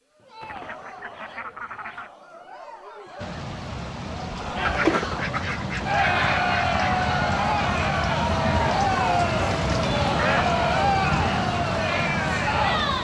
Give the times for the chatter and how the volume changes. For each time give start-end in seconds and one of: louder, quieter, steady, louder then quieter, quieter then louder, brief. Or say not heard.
0.1-12.9 louder.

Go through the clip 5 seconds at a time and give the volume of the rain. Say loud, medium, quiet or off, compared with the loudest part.
medium, loud, loud.